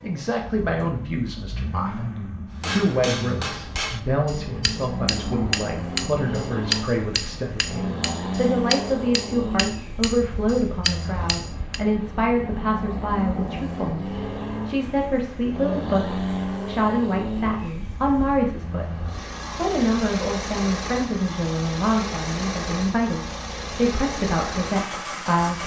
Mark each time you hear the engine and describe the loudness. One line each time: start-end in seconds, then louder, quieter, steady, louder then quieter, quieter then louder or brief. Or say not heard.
0.0-25.6 steady.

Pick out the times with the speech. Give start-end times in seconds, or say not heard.
0.0-25.6.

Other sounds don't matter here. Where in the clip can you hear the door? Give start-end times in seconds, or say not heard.
not heard.